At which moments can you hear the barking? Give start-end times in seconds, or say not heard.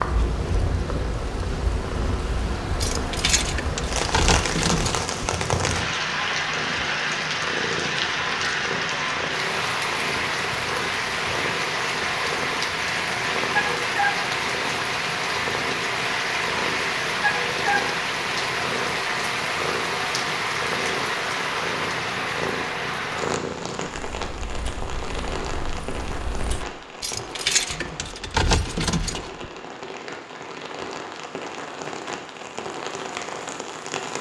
13.6-14.2, 17.2-17.9.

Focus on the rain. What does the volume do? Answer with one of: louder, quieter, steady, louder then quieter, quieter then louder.
quieter.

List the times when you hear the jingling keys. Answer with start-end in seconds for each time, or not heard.
2.8-5.3, 27.0-29.5.